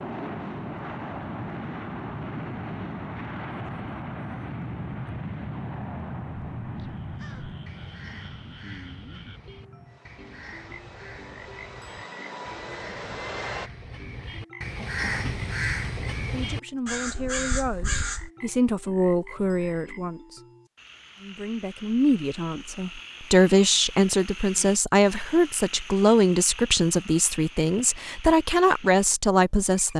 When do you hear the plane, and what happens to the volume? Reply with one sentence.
The plane can be heard from 0.0 to 13.7 s, getting quieter then louder.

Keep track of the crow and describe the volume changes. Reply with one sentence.
The volume of the crow goes up.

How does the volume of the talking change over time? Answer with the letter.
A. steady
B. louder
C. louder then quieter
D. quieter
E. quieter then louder
B.